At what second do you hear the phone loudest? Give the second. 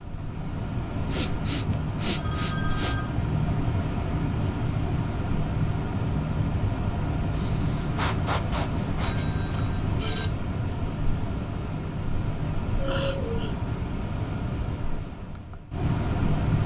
10 s.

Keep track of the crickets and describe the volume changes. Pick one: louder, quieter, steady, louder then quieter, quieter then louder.
steady.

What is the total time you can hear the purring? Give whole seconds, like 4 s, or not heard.
not heard.